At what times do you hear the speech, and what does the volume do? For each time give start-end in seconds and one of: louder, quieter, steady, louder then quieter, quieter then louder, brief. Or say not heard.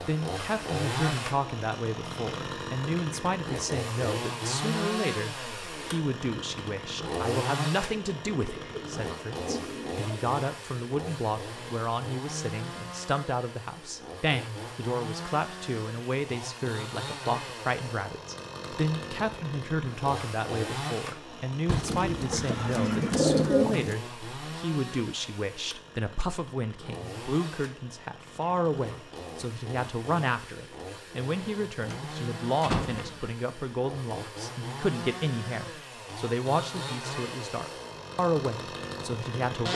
0.0-39.7 steady.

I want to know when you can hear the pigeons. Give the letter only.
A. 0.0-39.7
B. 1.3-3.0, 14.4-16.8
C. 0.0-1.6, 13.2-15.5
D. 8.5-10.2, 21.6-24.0
D.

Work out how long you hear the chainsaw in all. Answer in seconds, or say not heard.
40 s.